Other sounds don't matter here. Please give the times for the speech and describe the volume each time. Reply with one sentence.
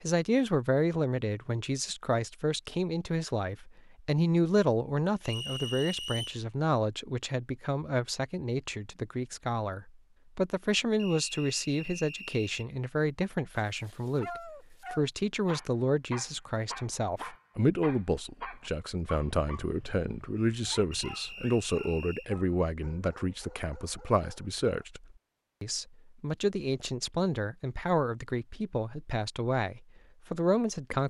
The speech can be heard from 0.0 to 31.0 s, at a steady volume.